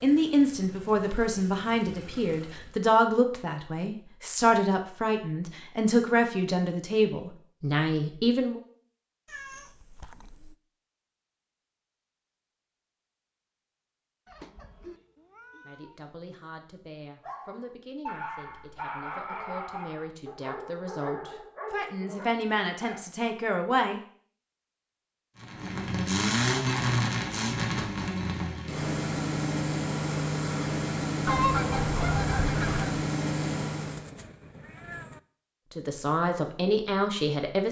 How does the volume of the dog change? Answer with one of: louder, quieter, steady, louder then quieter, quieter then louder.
quieter.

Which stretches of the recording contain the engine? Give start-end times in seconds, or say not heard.
0.0-2.8, 25.4-34.1.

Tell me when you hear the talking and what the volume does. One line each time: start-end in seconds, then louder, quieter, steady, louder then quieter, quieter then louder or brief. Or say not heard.
0.0-8.6 steady
15.7-24.0 louder
35.7-37.6 brief.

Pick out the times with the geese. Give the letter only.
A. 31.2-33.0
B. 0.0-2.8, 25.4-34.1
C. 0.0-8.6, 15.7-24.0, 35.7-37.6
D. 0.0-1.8
A.